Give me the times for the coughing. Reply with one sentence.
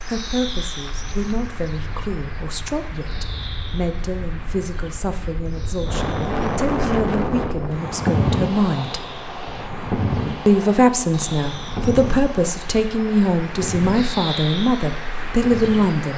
The coughing can't be heard in this clip.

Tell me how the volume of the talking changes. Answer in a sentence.
The volume of the talking goes up.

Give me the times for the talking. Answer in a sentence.
You can hear the talking from 0.1 to 9.1 s and from 10.4 to 16.1 s.